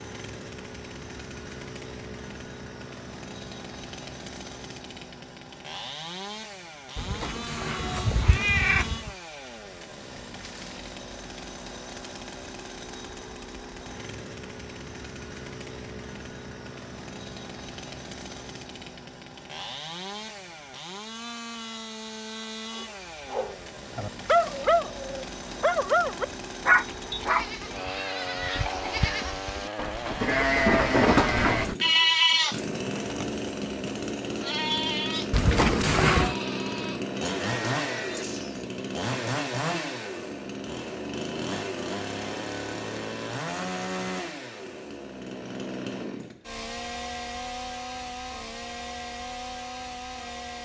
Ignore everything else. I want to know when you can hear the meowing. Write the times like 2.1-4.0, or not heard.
7.0-9.2, 35.3-36.4.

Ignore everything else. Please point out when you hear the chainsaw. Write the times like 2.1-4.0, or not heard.
0.0-50.5.